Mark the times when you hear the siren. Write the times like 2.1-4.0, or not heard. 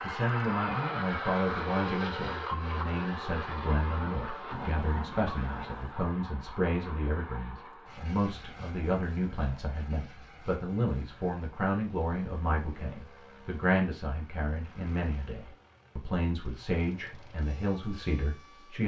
not heard.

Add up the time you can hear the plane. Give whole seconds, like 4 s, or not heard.
19 s.